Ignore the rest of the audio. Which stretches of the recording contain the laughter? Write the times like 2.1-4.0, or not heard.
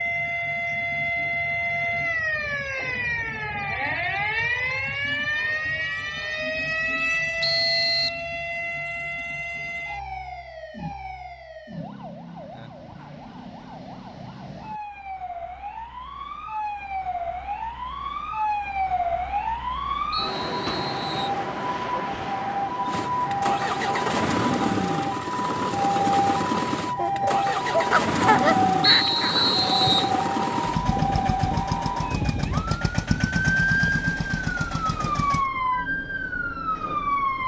26.9-29.5.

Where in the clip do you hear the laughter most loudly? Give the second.
28 s.